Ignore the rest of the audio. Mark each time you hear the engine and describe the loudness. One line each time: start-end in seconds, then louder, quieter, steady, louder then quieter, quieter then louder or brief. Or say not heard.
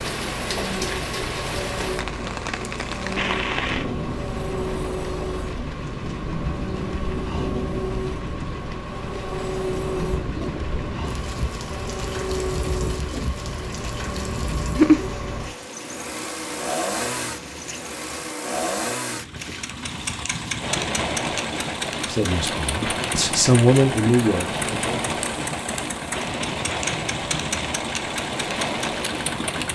0.0-29.7 steady.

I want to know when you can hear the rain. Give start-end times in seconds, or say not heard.
0.0-29.7.